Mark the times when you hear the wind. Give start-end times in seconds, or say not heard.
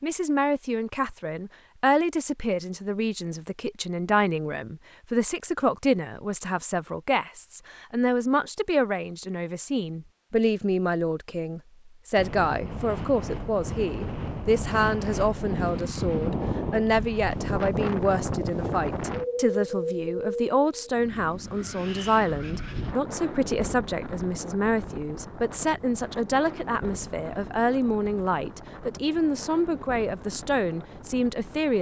12.2-31.7.